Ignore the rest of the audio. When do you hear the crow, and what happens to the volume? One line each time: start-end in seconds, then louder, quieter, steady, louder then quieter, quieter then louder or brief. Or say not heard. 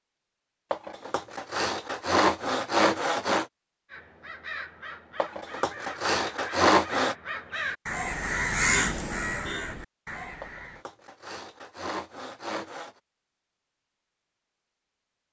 3.9-10.8 louder then quieter.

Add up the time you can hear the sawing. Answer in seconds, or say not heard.
7 s.